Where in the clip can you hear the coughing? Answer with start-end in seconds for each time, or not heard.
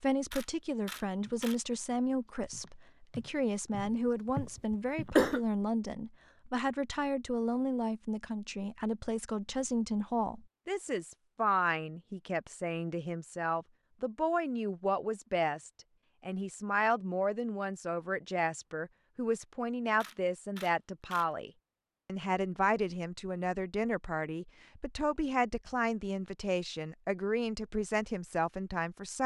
4.7-5.4.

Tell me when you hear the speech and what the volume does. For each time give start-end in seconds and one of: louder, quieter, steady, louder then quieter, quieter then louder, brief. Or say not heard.
0.0-29.2 steady.